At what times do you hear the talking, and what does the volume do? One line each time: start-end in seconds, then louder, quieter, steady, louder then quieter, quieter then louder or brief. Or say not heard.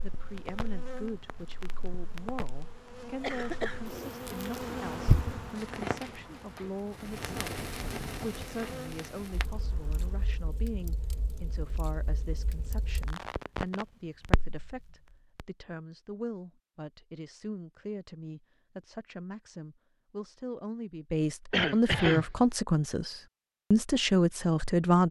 0.0-25.0 louder.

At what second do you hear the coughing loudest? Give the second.
22 s.